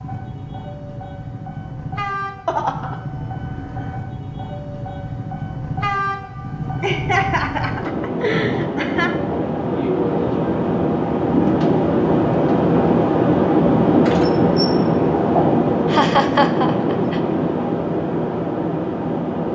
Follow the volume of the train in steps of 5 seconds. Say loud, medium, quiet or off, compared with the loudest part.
quiet, medium, loud, loud.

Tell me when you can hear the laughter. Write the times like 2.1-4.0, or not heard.
2.5-3.0, 6.8-9.2, 15.8-17.2.